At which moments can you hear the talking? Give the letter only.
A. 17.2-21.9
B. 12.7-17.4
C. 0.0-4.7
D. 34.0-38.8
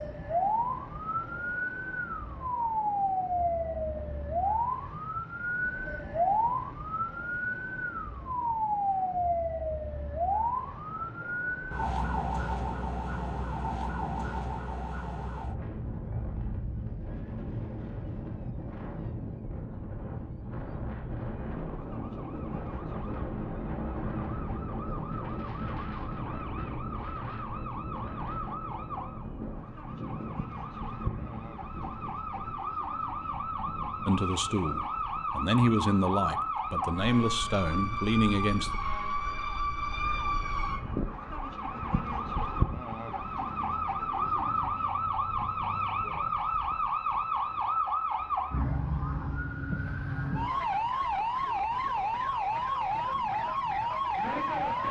D.